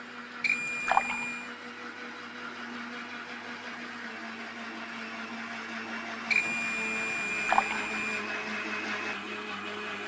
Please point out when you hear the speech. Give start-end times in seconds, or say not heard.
not heard.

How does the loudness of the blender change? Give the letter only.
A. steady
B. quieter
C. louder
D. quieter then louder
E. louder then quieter
C.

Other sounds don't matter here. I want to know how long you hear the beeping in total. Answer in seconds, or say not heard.
3 s.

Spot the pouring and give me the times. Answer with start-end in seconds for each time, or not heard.
0.7-1.2, 7.4-8.0.